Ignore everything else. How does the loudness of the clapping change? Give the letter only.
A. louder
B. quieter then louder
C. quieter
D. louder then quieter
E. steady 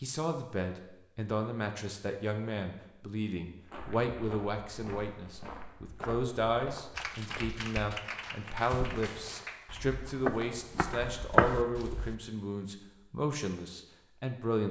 C.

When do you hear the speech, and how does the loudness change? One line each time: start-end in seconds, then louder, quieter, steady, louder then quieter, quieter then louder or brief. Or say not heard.
0.0-14.6 steady.